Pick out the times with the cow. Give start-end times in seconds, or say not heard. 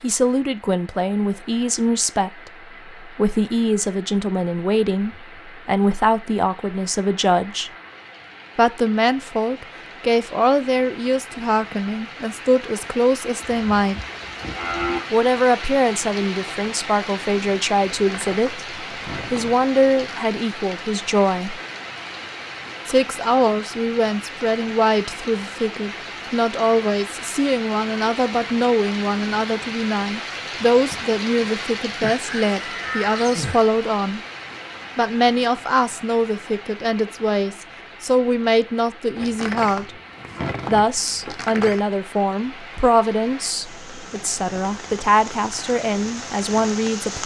13.4-15.0, 32.0-33.6.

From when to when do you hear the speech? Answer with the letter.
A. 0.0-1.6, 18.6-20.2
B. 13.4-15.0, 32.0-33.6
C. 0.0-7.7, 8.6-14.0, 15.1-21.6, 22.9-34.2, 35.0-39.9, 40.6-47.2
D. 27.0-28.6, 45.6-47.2
C.